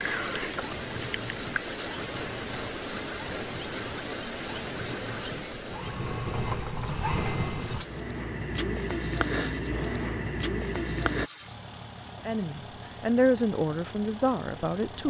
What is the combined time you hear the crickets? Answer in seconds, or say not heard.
11 s.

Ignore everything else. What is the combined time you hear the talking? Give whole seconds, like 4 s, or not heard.
3 s.